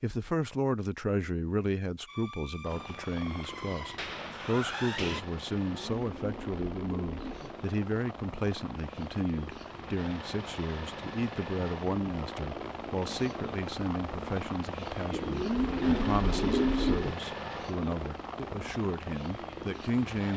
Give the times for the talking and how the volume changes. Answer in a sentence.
The talking can be heard from 0.0 to 20.3 s, at a steady volume.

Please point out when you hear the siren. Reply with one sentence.
The siren can be heard from 2.0 to 5.2 s.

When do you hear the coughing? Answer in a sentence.
You can't hear the coughing here.